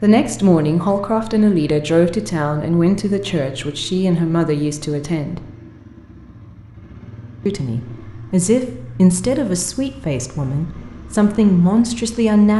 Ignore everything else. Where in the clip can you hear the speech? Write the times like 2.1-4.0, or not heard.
0.0-5.4, 7.5-12.5.